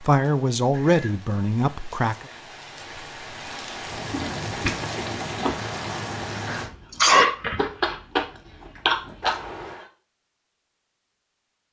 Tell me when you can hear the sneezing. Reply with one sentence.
You can hear the sneezing from 6.5 to 7.3 s.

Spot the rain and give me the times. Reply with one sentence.
The rain can be heard from 0.0 to 6.7 s.